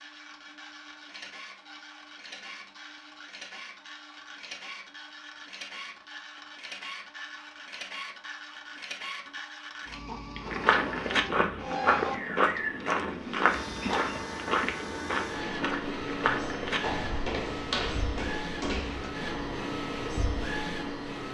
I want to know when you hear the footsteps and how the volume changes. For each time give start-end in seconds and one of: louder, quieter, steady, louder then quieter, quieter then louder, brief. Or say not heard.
10.4-19.1 quieter.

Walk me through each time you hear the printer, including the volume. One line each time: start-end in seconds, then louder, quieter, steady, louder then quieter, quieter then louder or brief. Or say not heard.
0.0-21.2 louder.